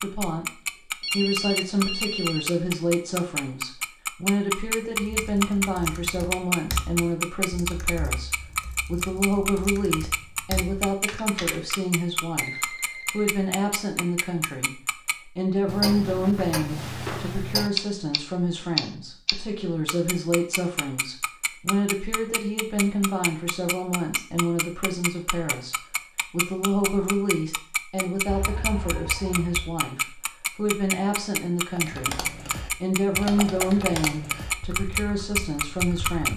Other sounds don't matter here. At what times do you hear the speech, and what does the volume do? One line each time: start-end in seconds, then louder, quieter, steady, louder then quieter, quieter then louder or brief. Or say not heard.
0.0-0.5 brief
1.1-36.3 steady.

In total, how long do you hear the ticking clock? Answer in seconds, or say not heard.
36 s.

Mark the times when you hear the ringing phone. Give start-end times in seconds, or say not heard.
1.0-2.5, 12.3-13.3, 28.2-29.8.